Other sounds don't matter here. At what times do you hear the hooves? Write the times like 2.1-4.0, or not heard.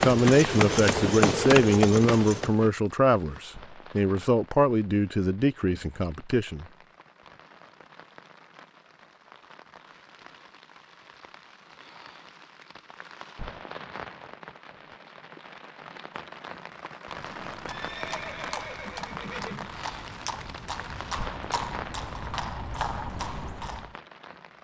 0.0-2.7, 17.1-23.9.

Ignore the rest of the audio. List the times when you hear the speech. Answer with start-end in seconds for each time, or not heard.
0.0-6.7.